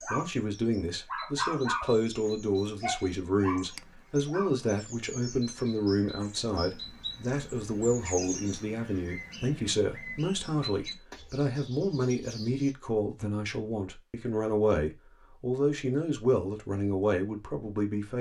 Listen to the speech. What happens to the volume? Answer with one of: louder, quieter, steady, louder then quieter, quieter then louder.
steady.